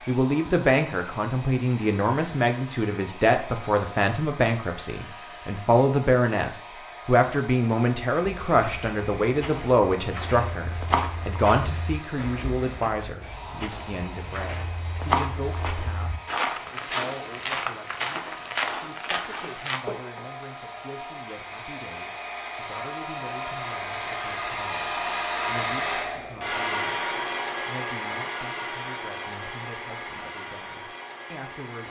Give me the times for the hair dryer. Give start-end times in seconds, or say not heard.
0.0-31.8.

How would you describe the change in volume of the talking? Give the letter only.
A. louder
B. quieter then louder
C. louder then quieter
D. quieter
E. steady
D.